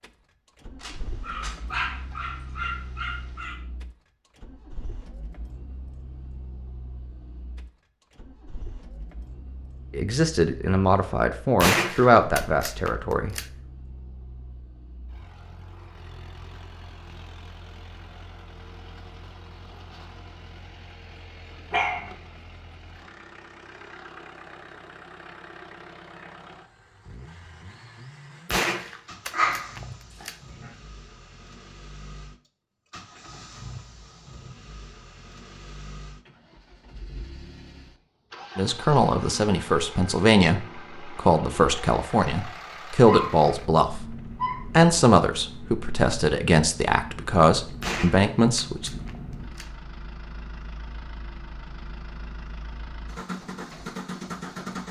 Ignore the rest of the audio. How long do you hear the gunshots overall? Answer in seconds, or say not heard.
6 s.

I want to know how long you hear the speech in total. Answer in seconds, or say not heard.
14 s.